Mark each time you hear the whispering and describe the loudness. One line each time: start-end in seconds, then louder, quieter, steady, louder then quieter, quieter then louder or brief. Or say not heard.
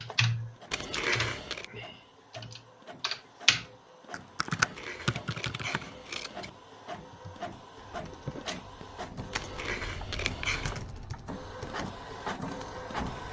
not heard.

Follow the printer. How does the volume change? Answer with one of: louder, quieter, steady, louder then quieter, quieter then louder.
louder.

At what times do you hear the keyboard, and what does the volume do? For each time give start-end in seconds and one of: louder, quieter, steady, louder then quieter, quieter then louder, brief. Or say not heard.
0.0-5.8 quieter then louder
7.1-13.2 quieter.